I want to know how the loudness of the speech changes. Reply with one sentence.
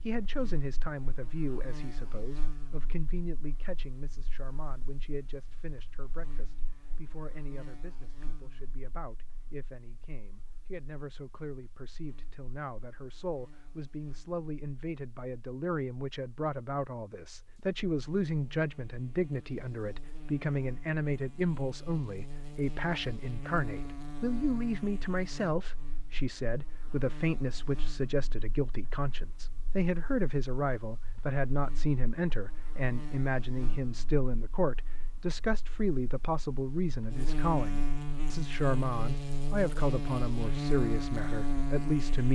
The volume of the speech goes up.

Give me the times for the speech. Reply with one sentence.
You can hear the speech from 0.0 to 42.3 s.